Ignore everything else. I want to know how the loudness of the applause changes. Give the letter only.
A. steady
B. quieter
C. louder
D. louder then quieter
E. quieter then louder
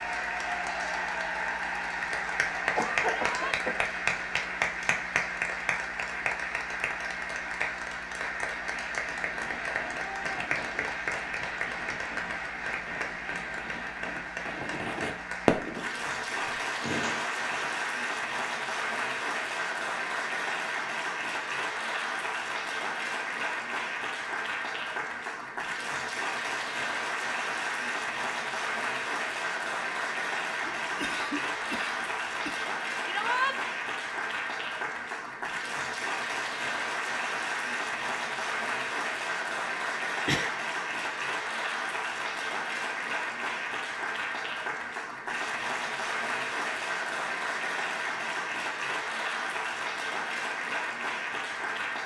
A.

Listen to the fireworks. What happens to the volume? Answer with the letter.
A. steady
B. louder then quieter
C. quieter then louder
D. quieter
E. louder
B.